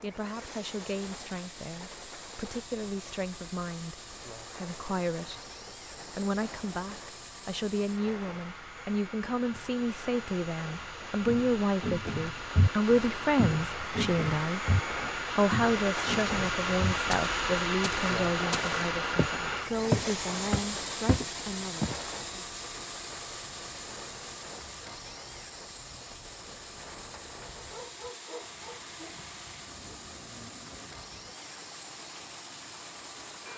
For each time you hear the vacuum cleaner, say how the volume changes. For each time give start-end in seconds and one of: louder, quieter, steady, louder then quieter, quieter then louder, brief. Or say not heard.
0.0-33.5 louder then quieter.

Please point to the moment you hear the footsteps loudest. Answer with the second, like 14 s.
20 s.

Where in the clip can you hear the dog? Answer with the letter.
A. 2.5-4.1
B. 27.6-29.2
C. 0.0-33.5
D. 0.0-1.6
B.